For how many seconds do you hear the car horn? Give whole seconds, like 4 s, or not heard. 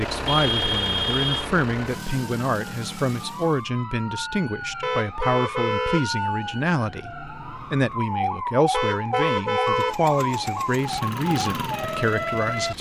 4 s.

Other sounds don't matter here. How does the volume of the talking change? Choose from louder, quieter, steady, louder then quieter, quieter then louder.
steady.